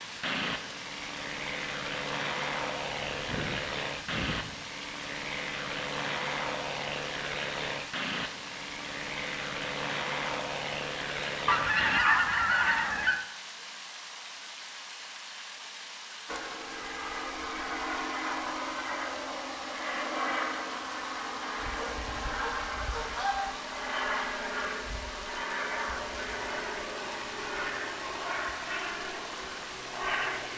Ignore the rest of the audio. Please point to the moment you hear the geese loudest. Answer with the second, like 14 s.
12 s.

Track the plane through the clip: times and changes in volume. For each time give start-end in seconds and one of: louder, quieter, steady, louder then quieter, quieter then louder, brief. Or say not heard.
0.0-12.0 steady
16.2-30.5 steady.